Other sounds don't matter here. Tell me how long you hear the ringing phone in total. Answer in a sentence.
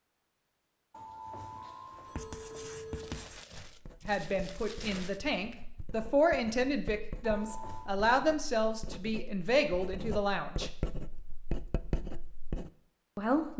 You can hear the ringing phone for 3 seconds altogether.